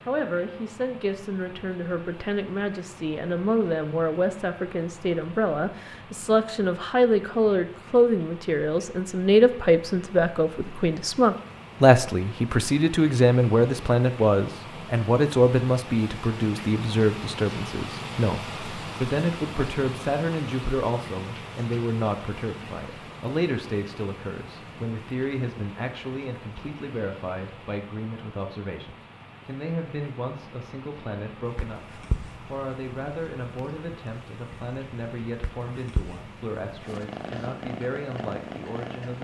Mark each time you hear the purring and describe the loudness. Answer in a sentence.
You can hear the purring from 31.4 to 39.1 s, getting quieter then louder.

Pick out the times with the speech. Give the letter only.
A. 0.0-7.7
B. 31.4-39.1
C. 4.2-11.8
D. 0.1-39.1
D.